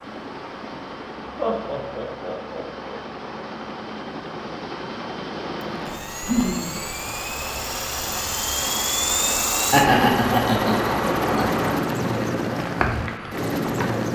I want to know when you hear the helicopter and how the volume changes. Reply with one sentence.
You can hear the helicopter from 0.0 to 14.0 s, getting louder.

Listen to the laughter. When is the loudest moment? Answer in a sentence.
The loudest moment of the laughter is at 10 seconds.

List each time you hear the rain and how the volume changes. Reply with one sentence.
You can hear the rain from 0.0 to 14.0 s, getting louder.